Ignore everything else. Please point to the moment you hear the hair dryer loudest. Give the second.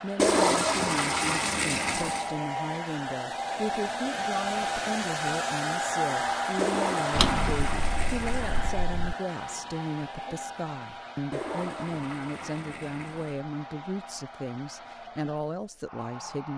6 s.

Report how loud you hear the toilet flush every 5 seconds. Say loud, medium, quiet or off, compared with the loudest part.
loud, medium, quiet, off.